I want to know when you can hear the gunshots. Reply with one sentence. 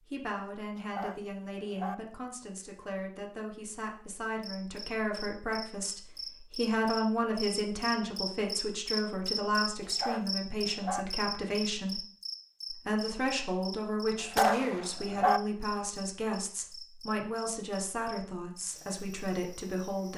The gunshots can be heard from 14.3 to 14.9 s.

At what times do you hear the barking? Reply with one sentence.
You can hear the barking from 0.8 to 1.9 s, from 9.8 to 11.1 s and from 14.2 to 15.4 s.